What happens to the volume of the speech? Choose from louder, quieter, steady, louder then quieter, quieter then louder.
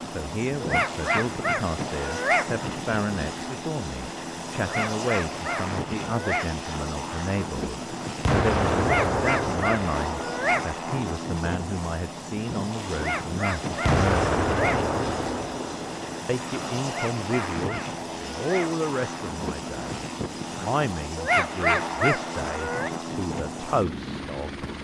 steady.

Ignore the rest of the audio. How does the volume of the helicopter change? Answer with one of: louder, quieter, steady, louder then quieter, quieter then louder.
steady.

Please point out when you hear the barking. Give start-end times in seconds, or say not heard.
0.6-2.5, 4.6-6.5, 8.8-10.7, 12.9-14.8, 16.8-18.8, 21.1-22.9.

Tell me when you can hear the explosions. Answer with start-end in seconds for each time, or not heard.
8.2-10.5, 13.8-16.2.